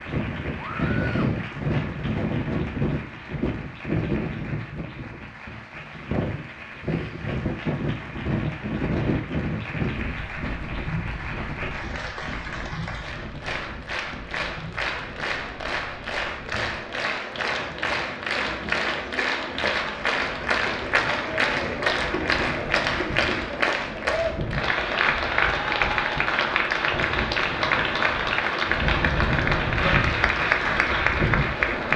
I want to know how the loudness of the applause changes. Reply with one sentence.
The volume of the applause goes up.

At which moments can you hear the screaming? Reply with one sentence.
You can hear the screaming from 0.6 to 1.4 s.